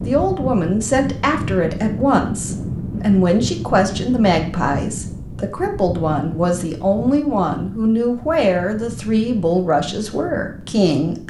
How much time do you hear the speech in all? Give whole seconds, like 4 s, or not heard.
11 s.